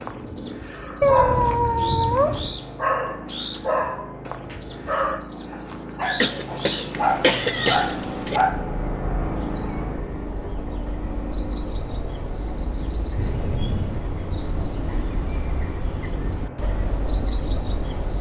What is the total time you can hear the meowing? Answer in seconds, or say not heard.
4 s.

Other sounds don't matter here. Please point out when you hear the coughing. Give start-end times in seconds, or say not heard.
6.2-8.4.